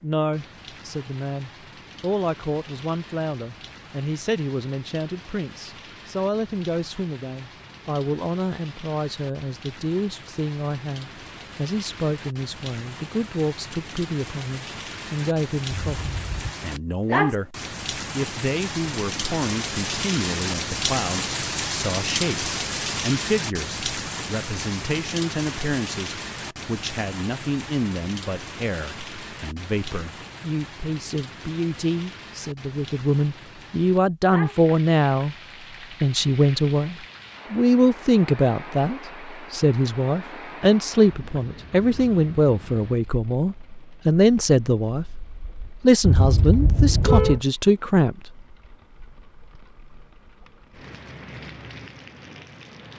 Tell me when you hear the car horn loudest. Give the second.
47 s.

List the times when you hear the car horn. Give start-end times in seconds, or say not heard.
15.7-16.6, 46.0-47.4.